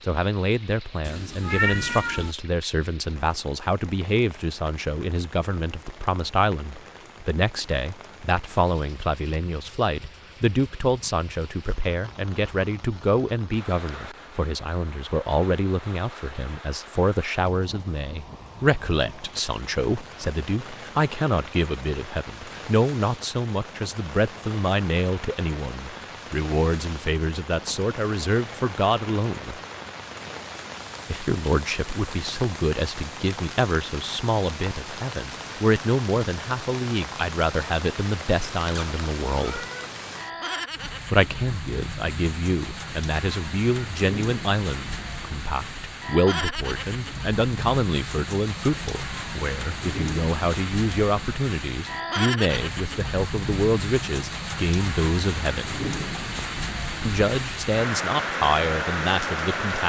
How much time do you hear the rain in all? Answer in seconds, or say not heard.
60 s.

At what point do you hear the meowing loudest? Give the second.
2 s.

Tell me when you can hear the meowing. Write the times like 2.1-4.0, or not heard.
1.0-2.4, 38.8-39.9.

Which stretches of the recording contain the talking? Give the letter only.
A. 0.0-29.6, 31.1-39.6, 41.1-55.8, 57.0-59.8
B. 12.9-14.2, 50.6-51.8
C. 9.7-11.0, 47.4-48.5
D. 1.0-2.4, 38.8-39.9
A.